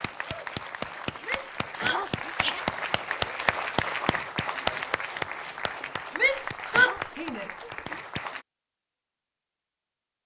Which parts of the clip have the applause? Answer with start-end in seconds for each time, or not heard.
0.0-8.4.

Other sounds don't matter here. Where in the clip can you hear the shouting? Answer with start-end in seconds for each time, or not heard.
1.2-2.4, 6.2-7.6.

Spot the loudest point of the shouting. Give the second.
7 s.